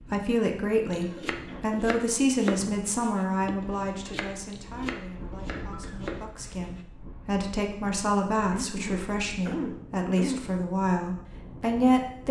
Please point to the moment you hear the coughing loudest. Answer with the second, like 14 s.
10 s.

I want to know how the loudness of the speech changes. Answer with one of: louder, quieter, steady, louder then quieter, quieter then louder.
quieter then louder.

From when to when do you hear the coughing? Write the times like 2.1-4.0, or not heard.
0.9-1.6, 5.5-6.0, 8.5-10.4.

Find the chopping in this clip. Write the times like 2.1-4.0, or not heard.
0.9-6.8.